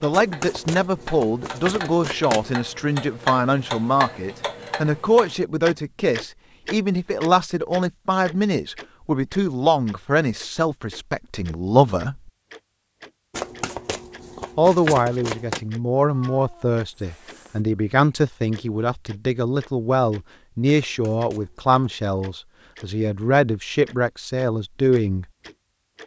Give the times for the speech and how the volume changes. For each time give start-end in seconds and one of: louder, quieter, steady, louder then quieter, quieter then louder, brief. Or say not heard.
0.0-12.3 steady
14.6-25.2 steady.